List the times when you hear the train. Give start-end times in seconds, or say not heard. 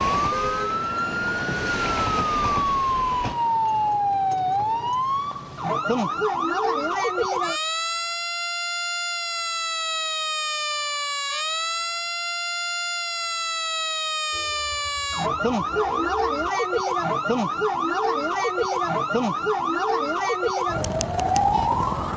0.0-3.4, 14.3-16.2.